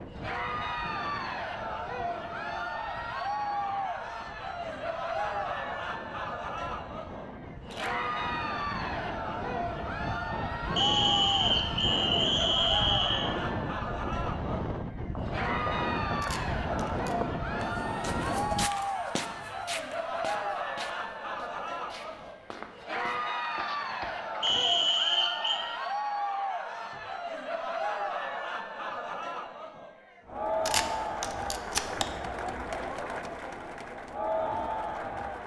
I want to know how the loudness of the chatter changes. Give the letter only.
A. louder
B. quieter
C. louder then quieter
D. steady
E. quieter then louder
D.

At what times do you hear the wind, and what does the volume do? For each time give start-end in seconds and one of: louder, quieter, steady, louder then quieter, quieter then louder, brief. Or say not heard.
0.0-18.7 louder.